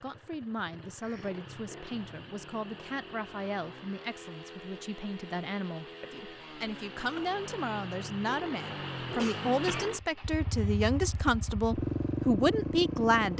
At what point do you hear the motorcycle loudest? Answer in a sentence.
The volume of the motorcycle peaks at 12 seconds.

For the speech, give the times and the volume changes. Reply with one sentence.
You can hear the speech from 0.0 to 13.3 s, getting louder.